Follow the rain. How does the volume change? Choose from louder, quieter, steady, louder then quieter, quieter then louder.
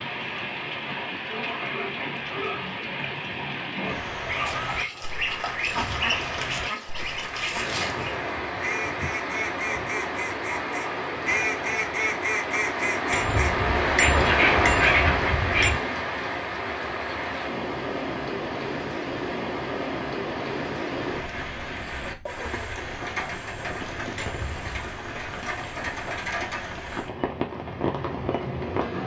louder then quieter.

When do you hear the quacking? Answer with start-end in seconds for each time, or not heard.
4.2-15.8.